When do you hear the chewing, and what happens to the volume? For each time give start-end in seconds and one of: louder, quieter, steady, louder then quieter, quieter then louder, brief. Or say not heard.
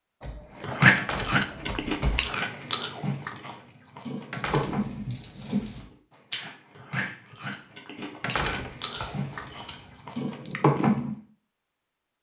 0.6-11.2 quieter then louder.